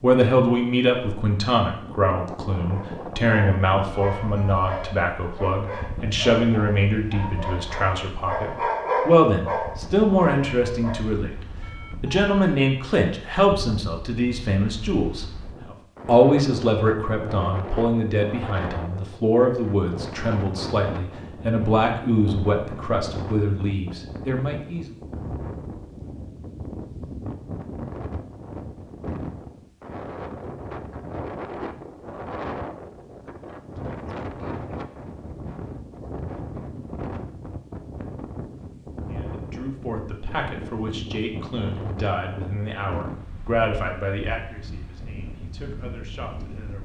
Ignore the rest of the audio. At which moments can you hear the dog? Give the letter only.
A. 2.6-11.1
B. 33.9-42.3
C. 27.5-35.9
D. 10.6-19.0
A.